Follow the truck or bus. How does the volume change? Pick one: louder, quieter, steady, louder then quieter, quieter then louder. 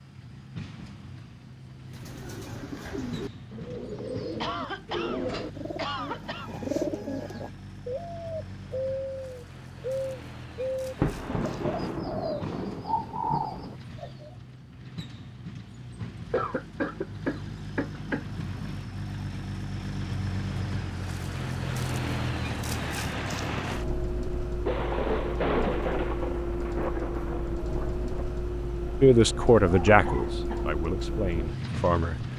louder.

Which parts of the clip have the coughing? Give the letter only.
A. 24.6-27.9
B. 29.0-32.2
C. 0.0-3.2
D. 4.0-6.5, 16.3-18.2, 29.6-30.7
D.